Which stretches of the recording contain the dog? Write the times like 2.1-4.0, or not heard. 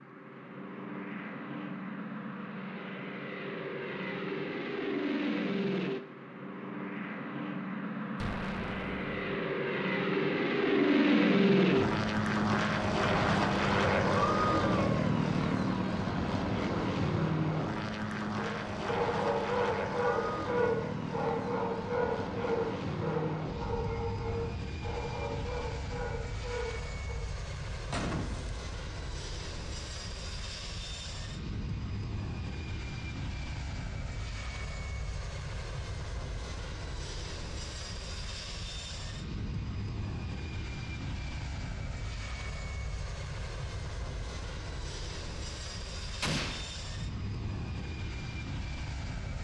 18.4-27.1.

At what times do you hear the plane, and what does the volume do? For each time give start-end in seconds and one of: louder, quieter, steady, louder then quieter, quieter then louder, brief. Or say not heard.
0.0-49.3 louder then quieter.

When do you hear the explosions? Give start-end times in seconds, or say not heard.
8.2-9.1, 27.9-28.6, 46.2-46.6.